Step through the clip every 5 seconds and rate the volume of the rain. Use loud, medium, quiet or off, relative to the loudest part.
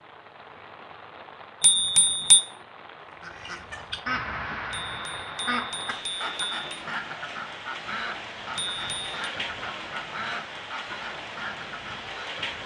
medium, loud, loud.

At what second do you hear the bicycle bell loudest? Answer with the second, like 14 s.
2 s.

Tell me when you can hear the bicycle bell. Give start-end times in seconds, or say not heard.
1.6-2.4, 4.7-6.7, 8.6-9.2.